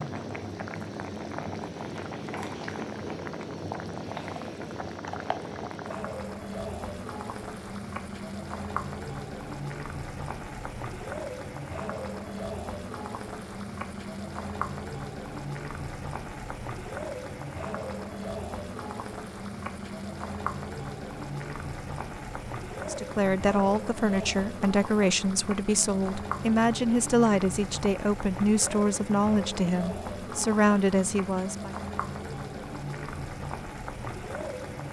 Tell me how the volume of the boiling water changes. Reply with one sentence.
The volume of the boiling water stays about the same.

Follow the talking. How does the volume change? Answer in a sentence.
The loudness of the talking stays about the same.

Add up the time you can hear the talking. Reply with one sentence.
The talking can be heard for 9 seconds in total.